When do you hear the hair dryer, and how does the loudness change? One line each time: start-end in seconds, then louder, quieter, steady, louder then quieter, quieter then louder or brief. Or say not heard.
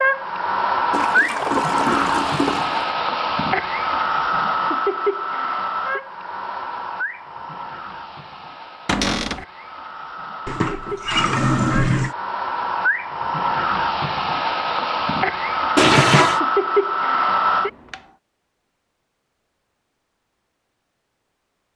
0.0-18.0 quieter then louder.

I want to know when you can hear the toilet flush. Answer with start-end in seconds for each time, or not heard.
0.9-2.9, 10.4-12.2, 15.8-16.4.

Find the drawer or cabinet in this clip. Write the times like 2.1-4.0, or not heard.
8.8-9.4.